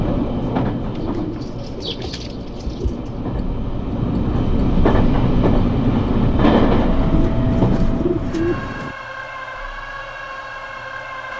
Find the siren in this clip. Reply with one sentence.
The siren can be heard from 8.2 to 11.3 s.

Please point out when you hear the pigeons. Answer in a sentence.
You can hear the pigeons from 0.9 to 3.1 s and from 7.0 to 8.9 s.